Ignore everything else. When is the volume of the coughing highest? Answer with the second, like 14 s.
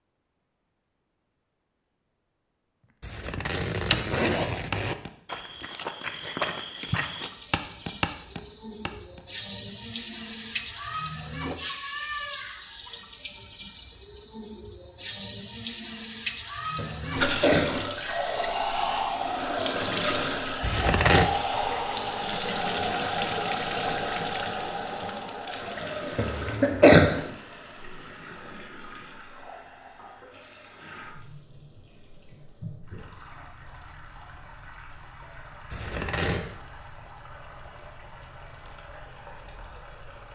27 s.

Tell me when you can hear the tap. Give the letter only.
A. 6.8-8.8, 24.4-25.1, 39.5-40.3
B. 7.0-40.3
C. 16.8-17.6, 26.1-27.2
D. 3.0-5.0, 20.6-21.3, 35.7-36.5
B.